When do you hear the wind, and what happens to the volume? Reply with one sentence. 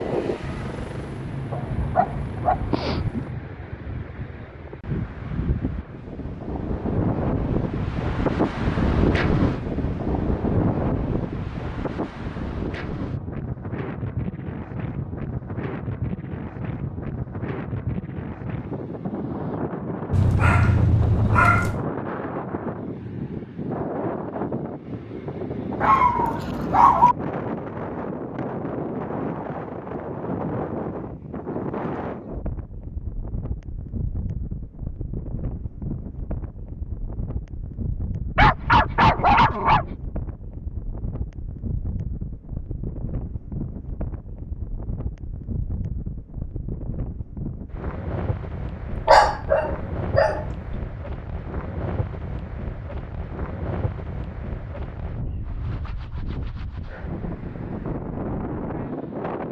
The wind can be heard from 0.0 to 59.4 s, getting quieter.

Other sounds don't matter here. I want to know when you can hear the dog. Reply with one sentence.
You can hear the dog from 1.5 to 3.3 s, from 20.1 to 21.9 s, from 25.8 to 27.1 s, from 38.4 to 40.0 s and from 48.9 to 50.8 s.